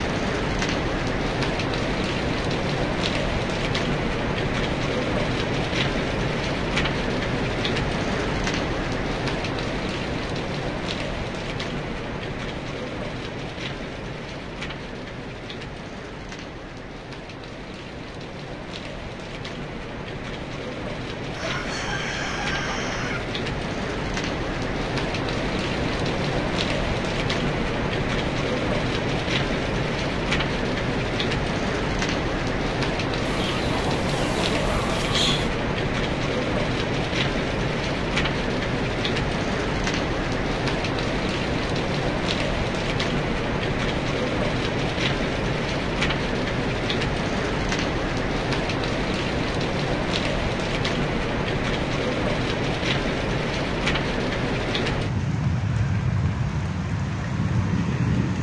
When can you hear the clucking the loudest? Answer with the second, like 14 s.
35 s.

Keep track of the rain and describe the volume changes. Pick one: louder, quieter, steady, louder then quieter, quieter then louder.
quieter then louder.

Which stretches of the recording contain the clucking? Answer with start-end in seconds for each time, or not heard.
21.3-23.2, 33.2-35.5.